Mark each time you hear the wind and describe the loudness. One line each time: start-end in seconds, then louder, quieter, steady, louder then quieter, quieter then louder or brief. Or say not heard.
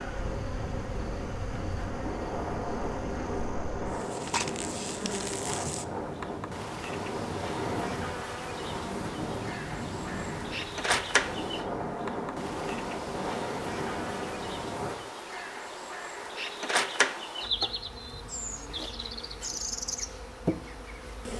0.0-14.9 steady.